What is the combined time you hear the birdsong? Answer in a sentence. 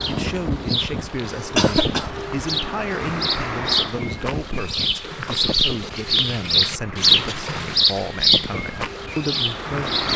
You can hear the birdsong for 10 seconds altogether.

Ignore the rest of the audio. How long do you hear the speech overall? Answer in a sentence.
The speech can be heard for 10 seconds in total.